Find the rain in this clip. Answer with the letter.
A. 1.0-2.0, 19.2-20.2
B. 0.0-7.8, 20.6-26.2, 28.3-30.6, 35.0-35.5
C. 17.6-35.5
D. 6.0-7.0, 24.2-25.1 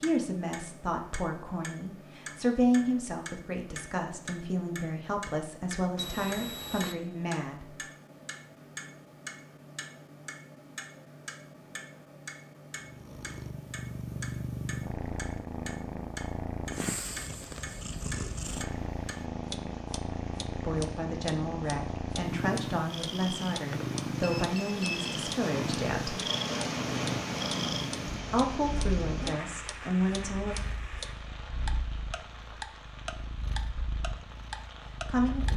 C.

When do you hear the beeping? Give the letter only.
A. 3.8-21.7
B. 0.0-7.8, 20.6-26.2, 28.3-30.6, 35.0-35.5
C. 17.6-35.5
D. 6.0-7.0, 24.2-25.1
D.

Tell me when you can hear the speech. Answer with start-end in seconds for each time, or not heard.
0.0-7.8, 20.6-26.2, 28.3-30.6, 35.0-35.5.